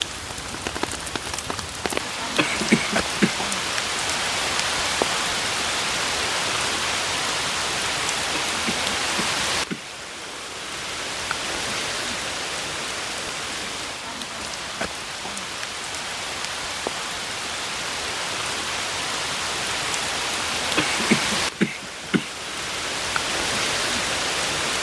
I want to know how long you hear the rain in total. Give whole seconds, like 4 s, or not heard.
25 s.